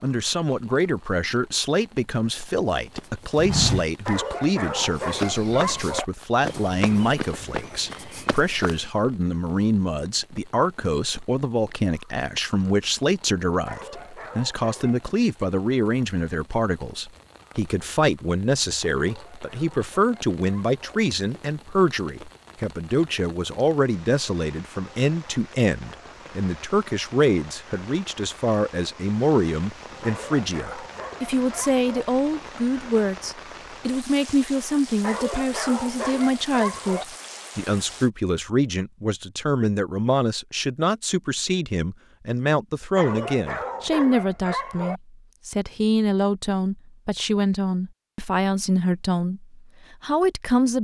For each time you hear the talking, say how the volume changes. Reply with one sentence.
You can hear the talking from 0.0 to 50.7 s, at a steady volume.